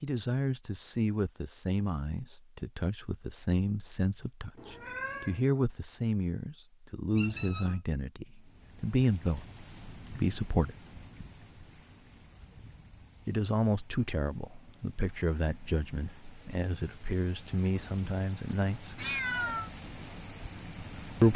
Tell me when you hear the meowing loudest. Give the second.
19 s.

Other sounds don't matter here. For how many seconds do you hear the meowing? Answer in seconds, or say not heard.
2 s.